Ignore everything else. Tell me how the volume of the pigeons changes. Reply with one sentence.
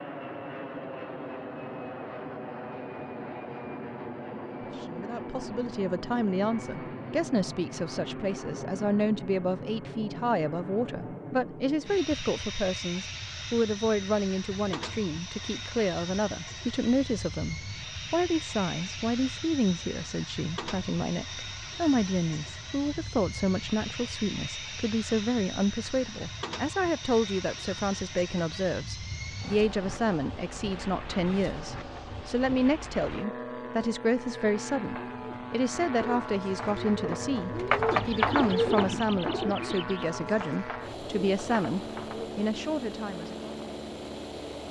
The loudness of the pigeons goes up, then down.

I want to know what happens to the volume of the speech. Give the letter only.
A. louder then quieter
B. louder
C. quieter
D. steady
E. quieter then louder
D.